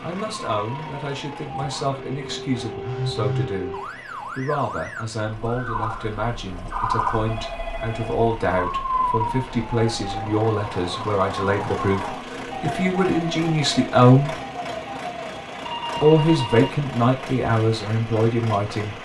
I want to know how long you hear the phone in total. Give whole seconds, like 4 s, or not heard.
3 s.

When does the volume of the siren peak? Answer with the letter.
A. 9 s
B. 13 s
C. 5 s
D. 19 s
A.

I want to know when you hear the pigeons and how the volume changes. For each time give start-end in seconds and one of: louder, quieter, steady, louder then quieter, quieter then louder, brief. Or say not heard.
not heard.